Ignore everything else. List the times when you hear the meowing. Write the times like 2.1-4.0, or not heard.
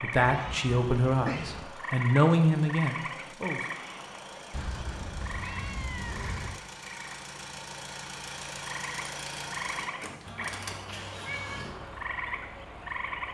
0.1-1.6, 4.5-6.6, 10.2-11.8.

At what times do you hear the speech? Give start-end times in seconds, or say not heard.
0.0-3.6.